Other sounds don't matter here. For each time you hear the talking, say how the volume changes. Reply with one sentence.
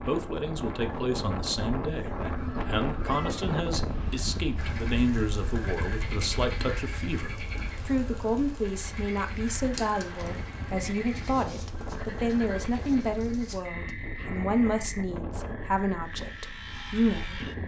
The talking can be heard from 0.1 to 17.4 s, at a steady volume.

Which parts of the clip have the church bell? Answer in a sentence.
The church bell can't be heard in this clip.